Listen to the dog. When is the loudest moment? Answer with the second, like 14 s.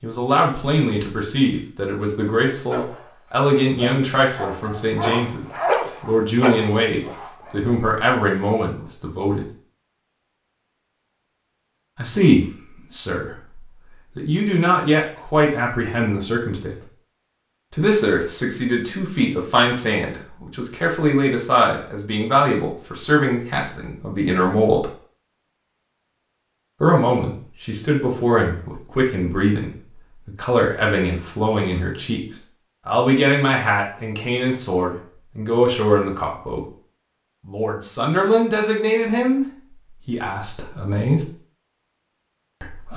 6 s.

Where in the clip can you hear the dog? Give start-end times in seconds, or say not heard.
2.5-7.8.